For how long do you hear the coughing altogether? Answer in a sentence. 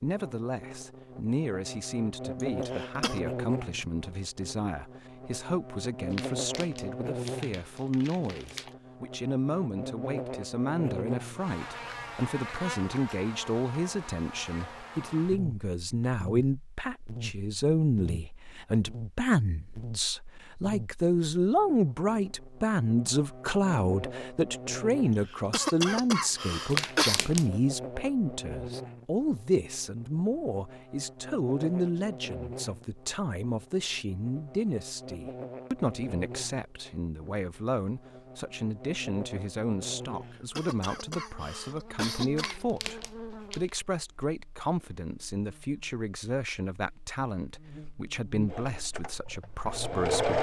You can hear the coughing for 5 seconds altogether.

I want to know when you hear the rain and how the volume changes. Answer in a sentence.
You can't hear the rain here.